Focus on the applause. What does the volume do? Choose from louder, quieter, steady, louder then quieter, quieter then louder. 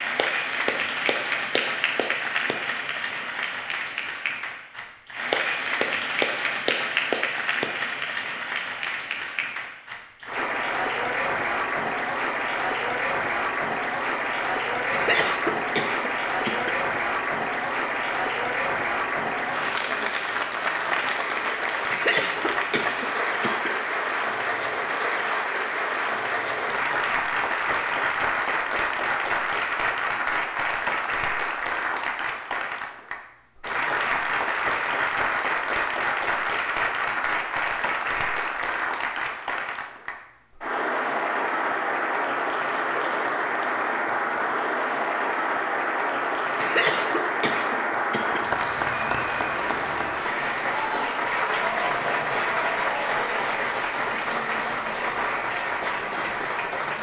steady.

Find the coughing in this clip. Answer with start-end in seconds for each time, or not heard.
14.9-16.8, 21.9-23.8, 46.6-48.5.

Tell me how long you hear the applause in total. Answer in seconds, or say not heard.
57 s.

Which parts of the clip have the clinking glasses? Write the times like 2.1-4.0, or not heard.
not heard.